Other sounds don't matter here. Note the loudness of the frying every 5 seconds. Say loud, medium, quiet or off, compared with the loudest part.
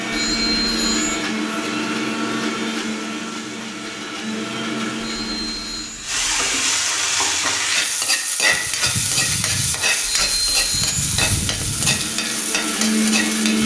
quiet, loud, loud.